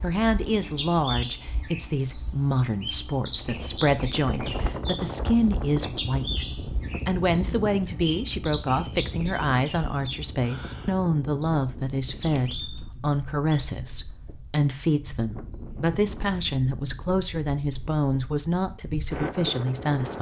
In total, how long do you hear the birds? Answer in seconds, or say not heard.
20 s.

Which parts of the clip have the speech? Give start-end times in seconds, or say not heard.
0.0-20.1.